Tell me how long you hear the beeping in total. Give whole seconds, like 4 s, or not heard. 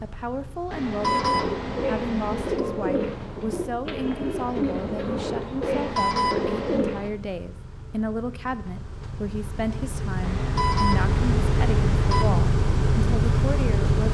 5 s.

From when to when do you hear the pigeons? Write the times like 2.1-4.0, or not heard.
0.9-7.1.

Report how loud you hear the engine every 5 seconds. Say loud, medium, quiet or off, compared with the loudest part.
quiet, quiet, loud.